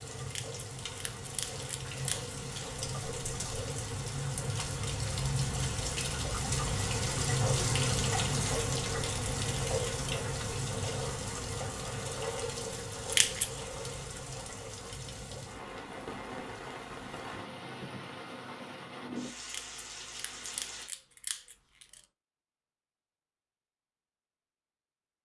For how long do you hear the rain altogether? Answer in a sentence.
The rain can be heard for 21 seconds in total.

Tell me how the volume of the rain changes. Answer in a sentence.
The loudness of the rain goes up, then down.